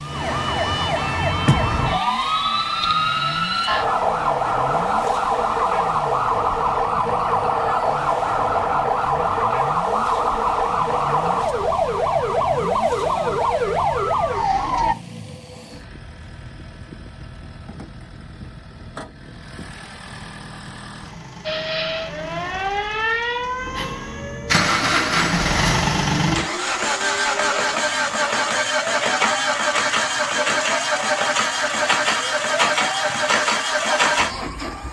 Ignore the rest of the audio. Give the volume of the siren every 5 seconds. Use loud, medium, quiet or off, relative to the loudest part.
loud, loud, loud, off, medium, quiet, quiet.